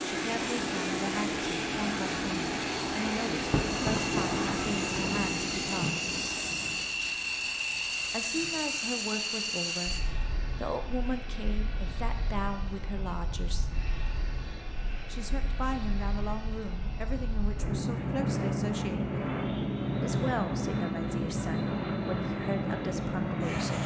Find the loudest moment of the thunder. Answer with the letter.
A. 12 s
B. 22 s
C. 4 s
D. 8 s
C.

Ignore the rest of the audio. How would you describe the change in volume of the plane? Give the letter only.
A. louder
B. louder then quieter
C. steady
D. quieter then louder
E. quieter
D.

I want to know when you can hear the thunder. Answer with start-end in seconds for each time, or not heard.
3.5-6.3.